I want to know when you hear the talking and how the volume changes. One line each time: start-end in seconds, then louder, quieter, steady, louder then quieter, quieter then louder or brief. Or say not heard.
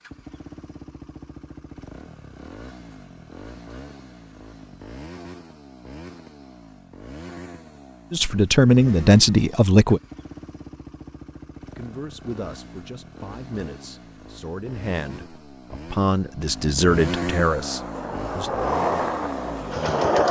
8.1-10.0 brief
11.8-18.6 louder.